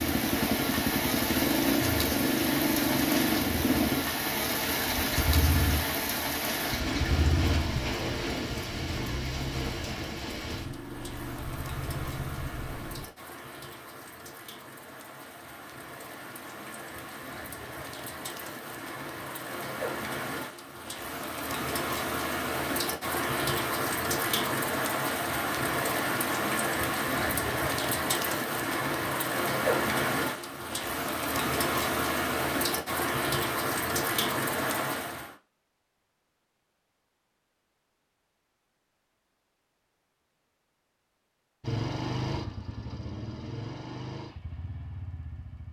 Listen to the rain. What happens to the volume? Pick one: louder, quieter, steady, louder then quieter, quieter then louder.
quieter then louder.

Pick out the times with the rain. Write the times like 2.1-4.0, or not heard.
0.0-35.4.